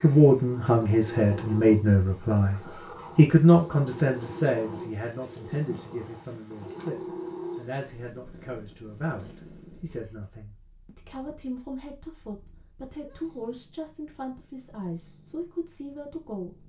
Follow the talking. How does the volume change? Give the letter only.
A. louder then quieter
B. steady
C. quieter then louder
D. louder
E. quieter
E.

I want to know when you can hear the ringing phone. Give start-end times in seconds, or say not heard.
not heard.